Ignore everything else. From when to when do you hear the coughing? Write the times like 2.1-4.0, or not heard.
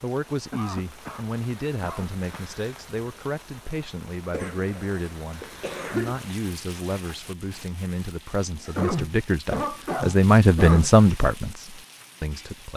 0.5-2.5, 4.3-6.2, 8.8-10.9.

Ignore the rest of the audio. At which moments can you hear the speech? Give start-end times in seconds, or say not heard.
0.0-12.7.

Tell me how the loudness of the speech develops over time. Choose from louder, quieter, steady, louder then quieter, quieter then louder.
louder.